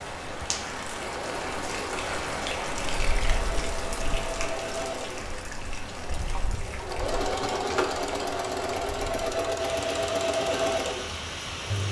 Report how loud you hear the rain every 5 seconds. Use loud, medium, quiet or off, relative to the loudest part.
loud, medium, loud.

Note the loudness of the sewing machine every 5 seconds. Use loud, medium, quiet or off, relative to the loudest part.
medium, loud, loud.